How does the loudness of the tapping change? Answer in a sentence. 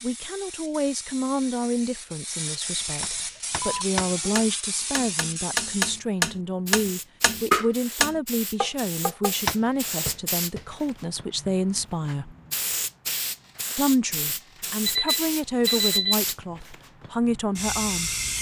The volume of the tapping goes up, then down.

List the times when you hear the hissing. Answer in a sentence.
The hissing can be heard from 0.0 to 18.3 s.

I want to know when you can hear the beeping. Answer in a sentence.
You can hear the beeping from 3.6 to 4.5 s and from 14.8 to 16.1 s.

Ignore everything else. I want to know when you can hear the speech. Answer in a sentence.
The speech can be heard from 0.0 to 12.3 s and from 13.8 to 18.1 s.